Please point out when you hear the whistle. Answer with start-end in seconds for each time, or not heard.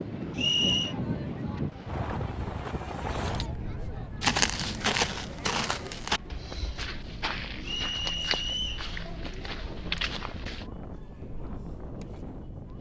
0.3-0.9, 7.6-8.8.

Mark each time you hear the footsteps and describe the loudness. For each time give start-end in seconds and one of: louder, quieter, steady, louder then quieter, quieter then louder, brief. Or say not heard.
3.8-10.7 quieter.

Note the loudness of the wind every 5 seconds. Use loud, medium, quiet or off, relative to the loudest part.
loud, medium, medium.